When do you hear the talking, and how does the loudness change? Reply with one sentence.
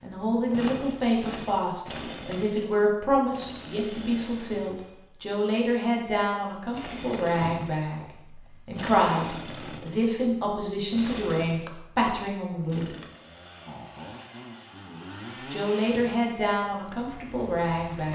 The talking can be heard from 0.0 to 12.9 s, at a steady volume; and briefly from 15.5 to 18.1 s.